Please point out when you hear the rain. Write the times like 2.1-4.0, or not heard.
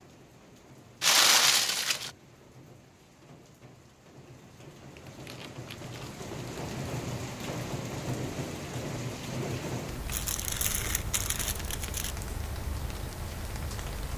0.0-14.1.